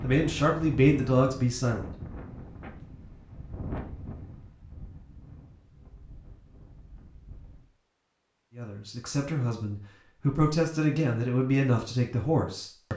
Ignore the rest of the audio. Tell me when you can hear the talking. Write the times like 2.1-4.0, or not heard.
0.0-1.9, 8.6-12.9.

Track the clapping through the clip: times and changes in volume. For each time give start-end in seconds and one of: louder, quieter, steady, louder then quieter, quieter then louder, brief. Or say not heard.
not heard.